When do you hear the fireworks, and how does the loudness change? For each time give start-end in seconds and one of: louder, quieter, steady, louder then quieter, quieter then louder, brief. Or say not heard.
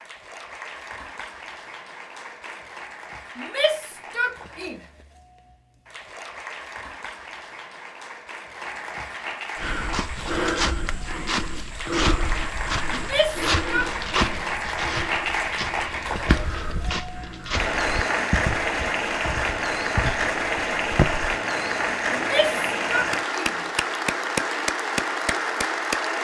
not heard.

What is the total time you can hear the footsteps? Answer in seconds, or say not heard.
12 s.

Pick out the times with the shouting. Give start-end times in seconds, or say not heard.
3.4-4.8, 12.9-14.4, 22.1-23.6.